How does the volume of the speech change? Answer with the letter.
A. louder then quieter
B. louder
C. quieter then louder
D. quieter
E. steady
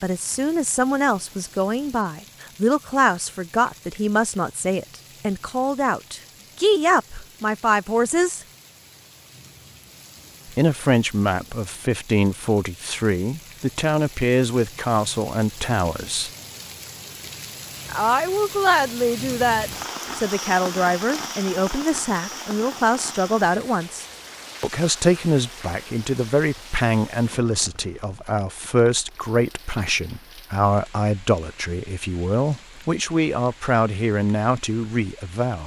E.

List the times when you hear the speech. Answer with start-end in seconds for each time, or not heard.
0.0-8.4, 10.6-16.3, 17.9-35.6.